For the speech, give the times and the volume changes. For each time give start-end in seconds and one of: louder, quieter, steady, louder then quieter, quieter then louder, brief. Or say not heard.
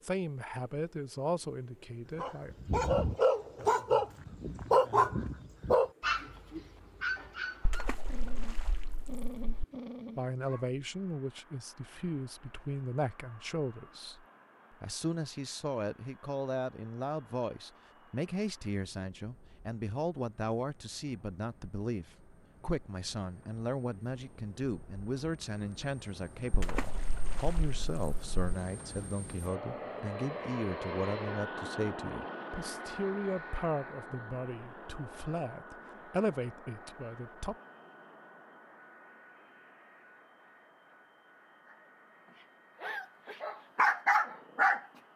0.0-2.5 brief
10.2-37.5 steady.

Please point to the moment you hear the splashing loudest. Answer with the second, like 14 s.
27 s.